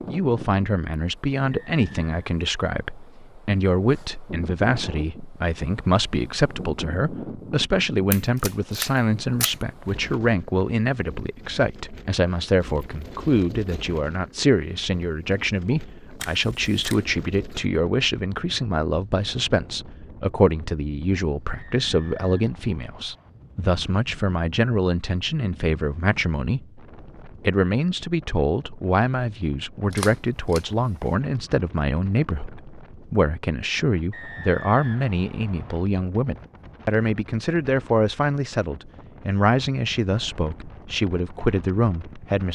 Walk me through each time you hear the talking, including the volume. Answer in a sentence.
The talking can be heard from 0.1 to 42.5 s, at a steady volume.